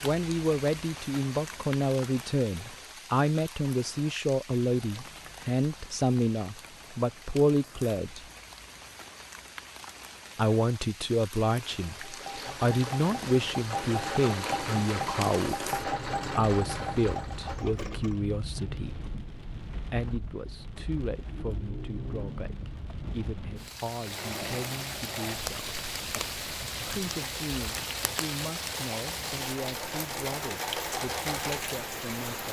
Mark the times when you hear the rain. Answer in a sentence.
You can hear the rain from 0.0 to 32.4 s.